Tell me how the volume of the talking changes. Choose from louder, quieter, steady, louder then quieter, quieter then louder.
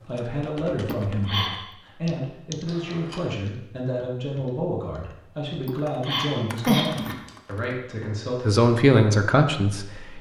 louder.